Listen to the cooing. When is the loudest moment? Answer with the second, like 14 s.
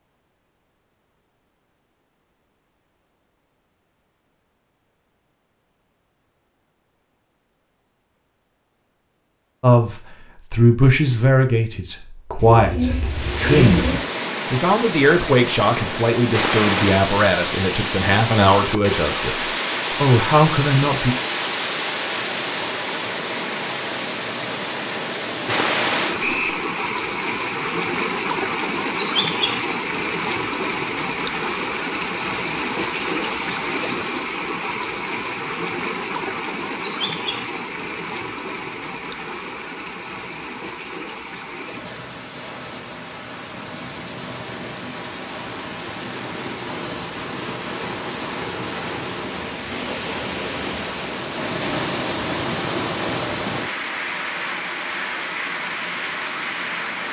14 s.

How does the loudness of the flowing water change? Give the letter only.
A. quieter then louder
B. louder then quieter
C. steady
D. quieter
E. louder
A.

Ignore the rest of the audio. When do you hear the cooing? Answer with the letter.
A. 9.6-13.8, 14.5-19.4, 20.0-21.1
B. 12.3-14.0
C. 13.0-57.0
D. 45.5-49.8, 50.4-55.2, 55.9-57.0
B.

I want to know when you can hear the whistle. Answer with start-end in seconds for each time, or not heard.
26.2-26.6.